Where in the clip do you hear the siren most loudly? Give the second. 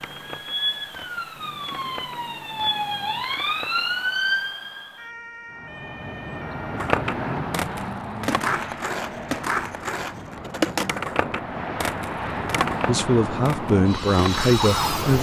4 s.